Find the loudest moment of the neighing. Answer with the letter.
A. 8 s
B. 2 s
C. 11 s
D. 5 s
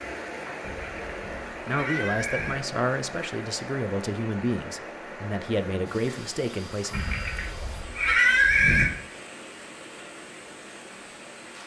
A.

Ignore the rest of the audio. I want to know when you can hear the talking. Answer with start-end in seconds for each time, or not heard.
1.6-7.0.